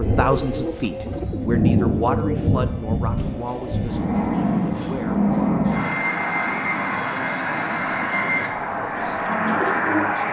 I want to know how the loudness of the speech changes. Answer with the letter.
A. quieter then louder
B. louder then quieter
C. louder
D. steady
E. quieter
E.